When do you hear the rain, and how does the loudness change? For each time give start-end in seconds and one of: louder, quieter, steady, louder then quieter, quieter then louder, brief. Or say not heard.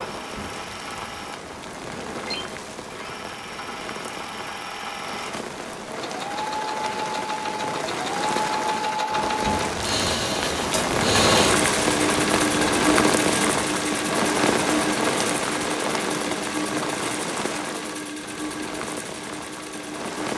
0.0-20.3 louder then quieter.